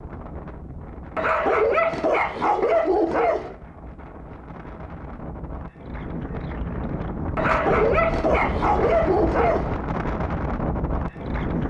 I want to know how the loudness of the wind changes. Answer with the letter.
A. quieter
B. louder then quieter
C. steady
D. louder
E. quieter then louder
D.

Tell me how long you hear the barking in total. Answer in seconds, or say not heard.
5 s.